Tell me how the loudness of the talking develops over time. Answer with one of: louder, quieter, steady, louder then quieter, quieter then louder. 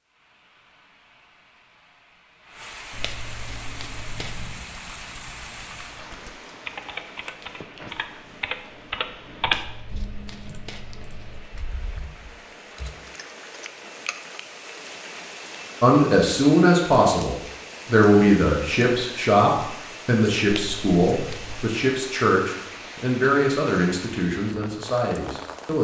quieter.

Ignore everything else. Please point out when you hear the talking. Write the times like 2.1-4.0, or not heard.
15.8-25.7.